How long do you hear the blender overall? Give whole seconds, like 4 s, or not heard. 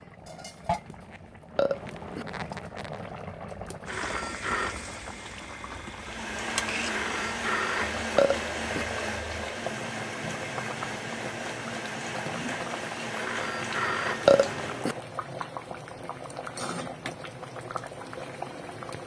9 s.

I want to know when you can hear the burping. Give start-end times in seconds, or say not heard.
1.6-2.2, 8.2-8.8, 14.2-14.9.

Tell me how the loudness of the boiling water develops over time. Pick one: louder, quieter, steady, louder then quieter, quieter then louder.
steady.